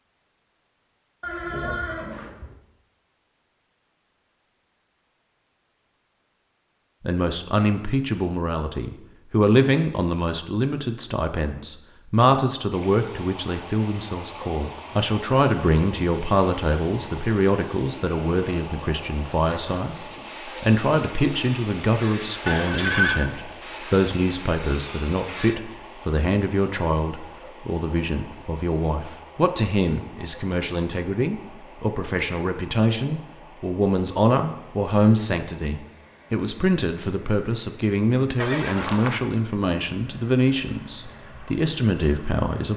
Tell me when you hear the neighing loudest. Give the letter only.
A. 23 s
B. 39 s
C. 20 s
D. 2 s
A.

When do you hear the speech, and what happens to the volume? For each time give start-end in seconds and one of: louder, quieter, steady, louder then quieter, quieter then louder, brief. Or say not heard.
7.0-42.7 steady.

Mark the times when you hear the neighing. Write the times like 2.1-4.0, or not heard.
1.2-2.5, 22.4-23.2, 38.4-39.2.